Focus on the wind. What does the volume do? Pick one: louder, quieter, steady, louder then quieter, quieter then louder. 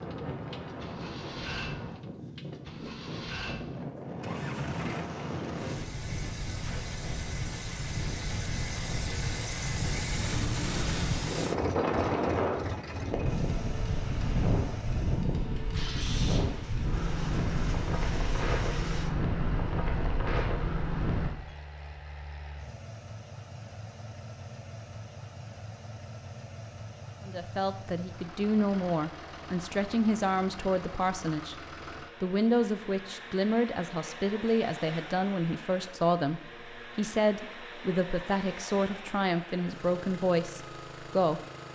louder.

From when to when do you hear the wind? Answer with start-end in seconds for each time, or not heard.
0.0-21.3.